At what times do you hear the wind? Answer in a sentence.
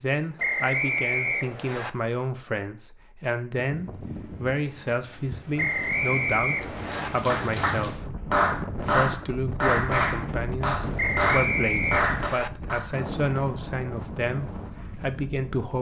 You can hear the wind from 3.6 to 15.7 s.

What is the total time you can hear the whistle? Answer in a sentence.
The whistle can be heard for 5 seconds in total.